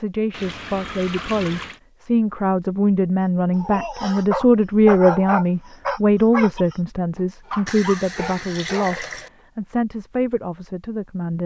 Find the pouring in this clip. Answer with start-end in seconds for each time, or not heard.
0.3-1.8, 7.7-9.3.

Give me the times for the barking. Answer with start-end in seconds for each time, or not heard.
3.5-8.9.